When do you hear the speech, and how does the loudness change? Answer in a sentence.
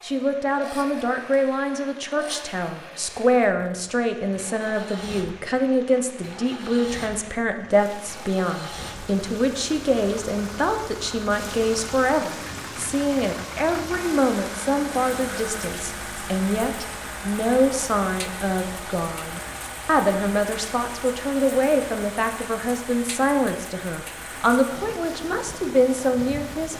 The speech can be heard from 0.0 to 26.7 s, at a steady volume.